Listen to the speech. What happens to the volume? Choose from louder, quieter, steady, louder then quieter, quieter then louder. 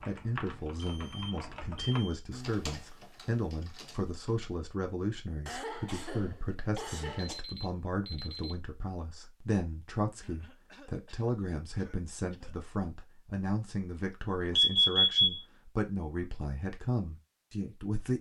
steady.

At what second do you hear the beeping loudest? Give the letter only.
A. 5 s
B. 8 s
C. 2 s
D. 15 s
D.